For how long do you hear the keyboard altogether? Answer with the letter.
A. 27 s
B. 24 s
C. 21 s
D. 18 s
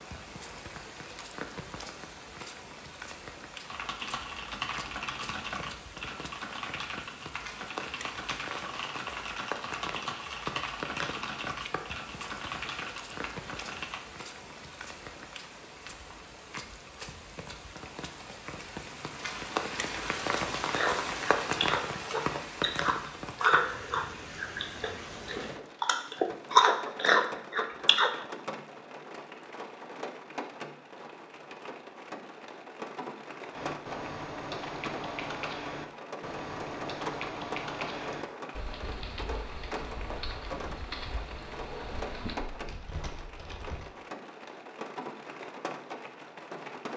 C.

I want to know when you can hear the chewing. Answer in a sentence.
You can hear the chewing from 20.7 to 28.1 s.